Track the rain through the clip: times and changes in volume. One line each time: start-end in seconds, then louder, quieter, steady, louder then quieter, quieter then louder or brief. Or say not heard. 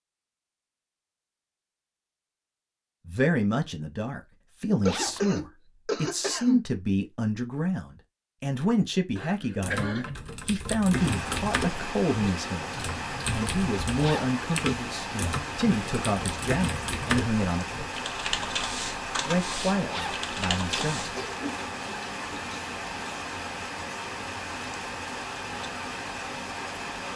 10.9-27.1 steady.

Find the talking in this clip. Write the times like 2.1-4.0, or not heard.
3.0-17.7, 19.2-21.2.